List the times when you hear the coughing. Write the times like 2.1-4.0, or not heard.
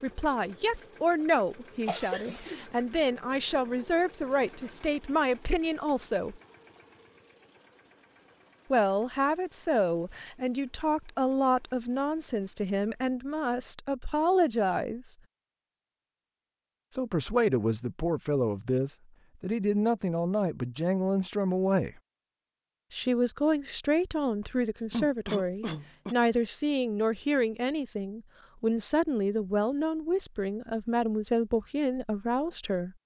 1.9-2.6, 24.9-26.1.